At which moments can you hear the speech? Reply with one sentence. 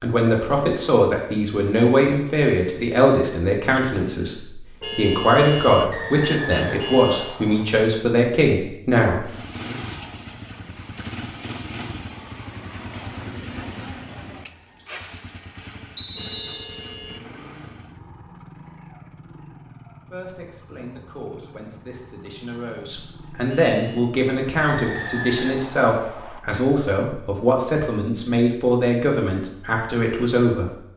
The speech can be heard from 0.0 to 9.2 s and from 20.1 to 30.8 s.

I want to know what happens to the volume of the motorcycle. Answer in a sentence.
The volume of the motorcycle goes down.